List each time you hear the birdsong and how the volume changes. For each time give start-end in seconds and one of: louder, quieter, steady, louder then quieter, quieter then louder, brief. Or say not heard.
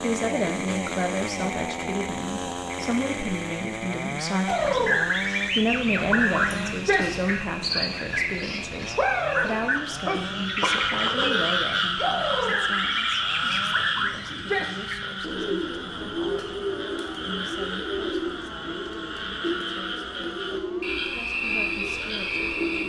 4.5-22.8 quieter.